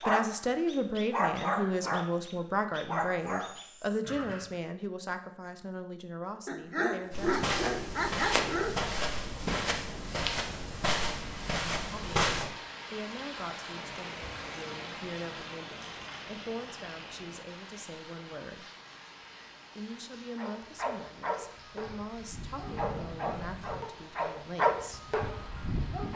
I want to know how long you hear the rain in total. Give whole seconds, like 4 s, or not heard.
15 s.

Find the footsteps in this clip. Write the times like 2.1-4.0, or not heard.
7.1-12.5.